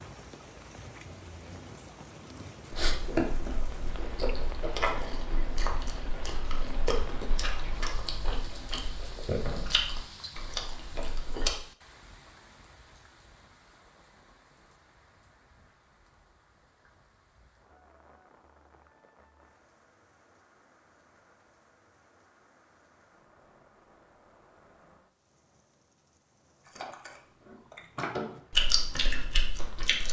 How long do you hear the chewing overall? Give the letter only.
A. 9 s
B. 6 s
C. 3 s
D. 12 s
D.